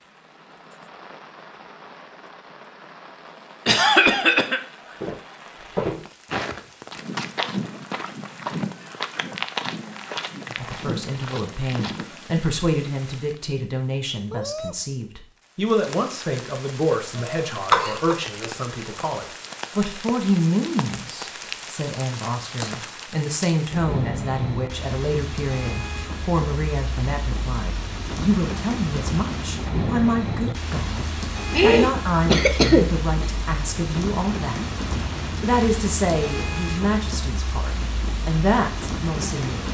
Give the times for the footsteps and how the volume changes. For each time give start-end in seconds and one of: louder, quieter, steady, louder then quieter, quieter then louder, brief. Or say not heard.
5.0-12.4 quieter.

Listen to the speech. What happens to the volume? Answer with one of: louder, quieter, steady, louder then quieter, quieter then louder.
steady.